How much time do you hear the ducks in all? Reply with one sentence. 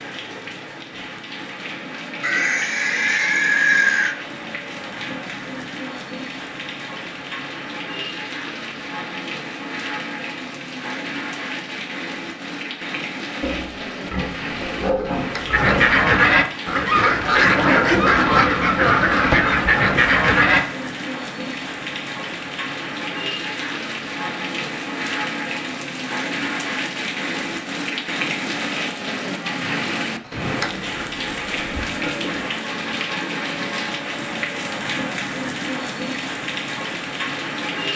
You can hear the ducks for 5 seconds altogether.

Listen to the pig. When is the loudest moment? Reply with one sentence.
The loudest moment of the pig is at 4 seconds.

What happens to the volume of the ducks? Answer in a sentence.
The loudness of the ducks stays about the same.